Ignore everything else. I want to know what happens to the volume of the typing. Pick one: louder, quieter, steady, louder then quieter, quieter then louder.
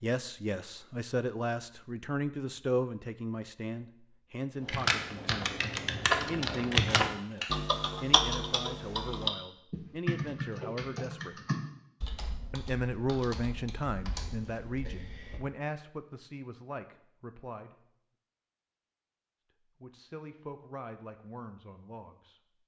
quieter.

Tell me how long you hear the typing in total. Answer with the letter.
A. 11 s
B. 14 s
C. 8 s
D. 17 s
A.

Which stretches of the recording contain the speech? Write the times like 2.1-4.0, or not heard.
0.0-5.6, 6.2-11.4, 12.5-17.8, 19.8-22.4.